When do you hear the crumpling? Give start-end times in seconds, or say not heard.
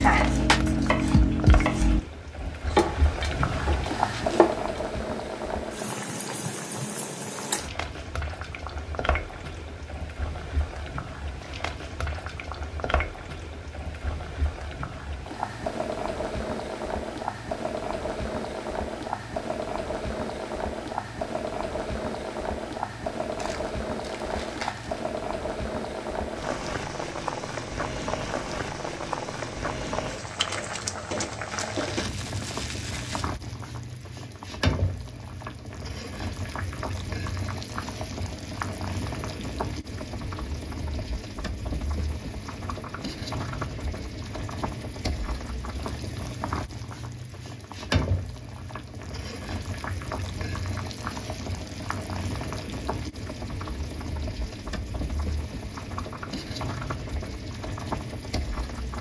23.4-25.0, 31.4-33.3.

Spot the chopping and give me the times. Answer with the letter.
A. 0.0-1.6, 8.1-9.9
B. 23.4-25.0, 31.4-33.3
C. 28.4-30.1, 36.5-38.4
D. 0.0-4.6
D.